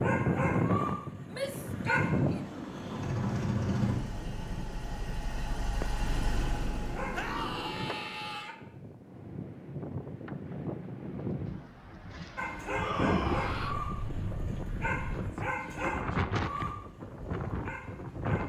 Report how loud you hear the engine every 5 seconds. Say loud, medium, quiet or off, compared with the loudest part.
loud, medium, off, off.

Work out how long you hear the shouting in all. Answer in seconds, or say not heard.
4 s.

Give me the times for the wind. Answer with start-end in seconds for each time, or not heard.
0.0-18.4.